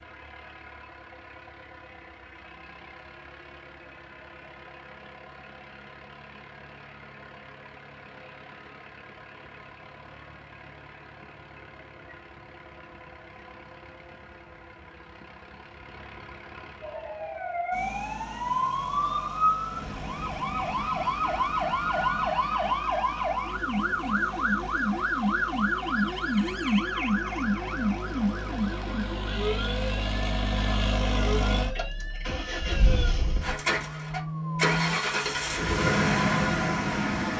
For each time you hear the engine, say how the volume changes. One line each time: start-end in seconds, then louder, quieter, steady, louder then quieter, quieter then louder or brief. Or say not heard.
0.0-37.3 louder.